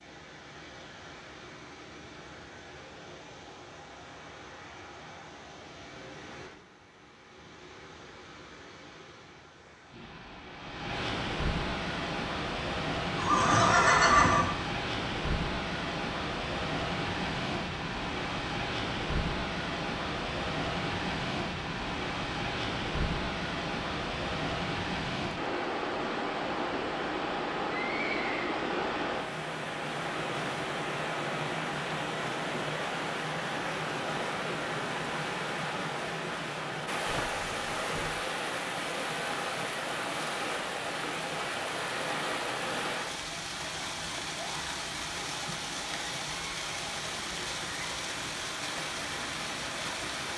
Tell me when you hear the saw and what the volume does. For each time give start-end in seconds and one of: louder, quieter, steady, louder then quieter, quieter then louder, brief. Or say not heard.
not heard.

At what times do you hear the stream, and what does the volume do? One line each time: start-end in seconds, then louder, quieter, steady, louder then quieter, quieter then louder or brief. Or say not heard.
0.0-50.3 louder.